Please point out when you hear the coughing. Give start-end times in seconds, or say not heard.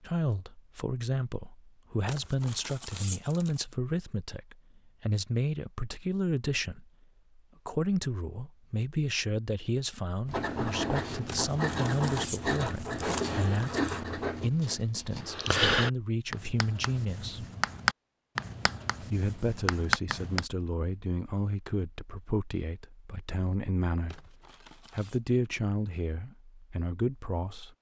not heard.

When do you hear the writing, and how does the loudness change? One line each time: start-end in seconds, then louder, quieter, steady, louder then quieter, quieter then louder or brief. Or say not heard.
10.2-20.4 steady.